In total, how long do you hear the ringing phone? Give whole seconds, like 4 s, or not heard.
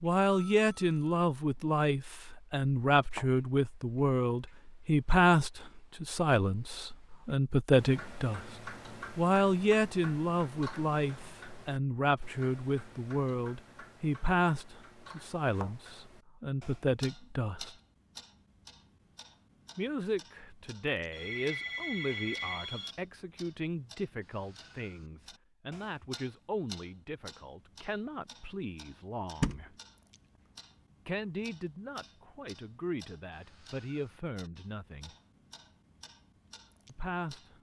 3 s.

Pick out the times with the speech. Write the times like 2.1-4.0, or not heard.
0.0-8.4, 9.2-17.8, 19.8-29.8, 31.1-35.1, 36.9-37.5.